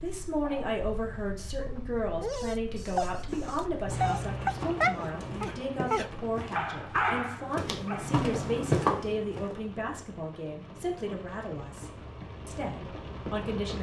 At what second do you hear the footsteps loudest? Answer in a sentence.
The volume of the footsteps peaks at 9 seconds.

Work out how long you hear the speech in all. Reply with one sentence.
The speech can be heard for 14 seconds in total.